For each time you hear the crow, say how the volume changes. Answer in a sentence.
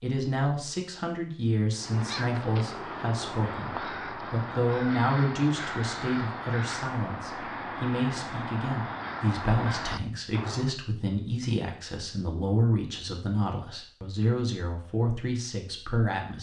The crow can be heard from 1.7 to 10.8 s, at a steady volume.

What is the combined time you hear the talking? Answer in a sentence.
The talking can be heard for 16 seconds in total.